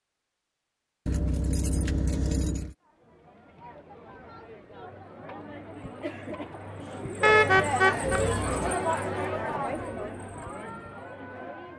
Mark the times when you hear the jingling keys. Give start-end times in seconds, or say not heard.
1.1-2.8, 8.2-8.8.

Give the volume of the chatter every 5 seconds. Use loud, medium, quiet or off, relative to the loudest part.
quiet, loud, medium.